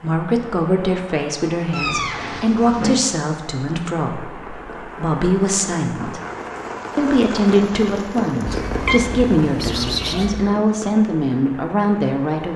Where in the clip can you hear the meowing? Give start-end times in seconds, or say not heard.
1.7-3.0, 8.4-10.4.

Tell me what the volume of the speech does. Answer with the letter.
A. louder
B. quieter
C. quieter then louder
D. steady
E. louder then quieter
D.